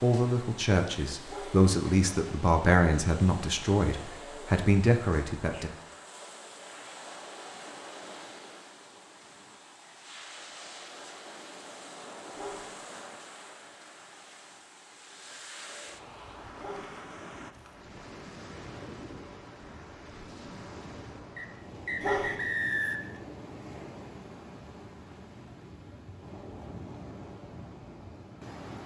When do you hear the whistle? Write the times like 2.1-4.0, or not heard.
21.4-23.1.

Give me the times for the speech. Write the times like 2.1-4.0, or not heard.
0.0-5.7.